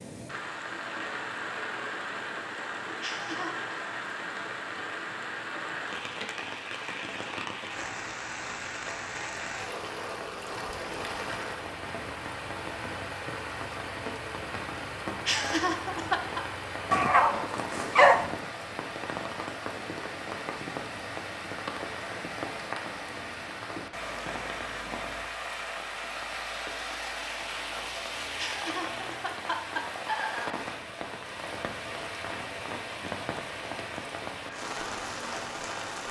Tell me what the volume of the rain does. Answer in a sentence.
The loudness of the rain stays about the same.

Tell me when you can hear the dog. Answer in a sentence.
You can hear the dog from 16.9 to 18.4 s.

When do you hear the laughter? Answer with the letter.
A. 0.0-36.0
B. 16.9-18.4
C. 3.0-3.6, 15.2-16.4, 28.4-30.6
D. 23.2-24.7
C.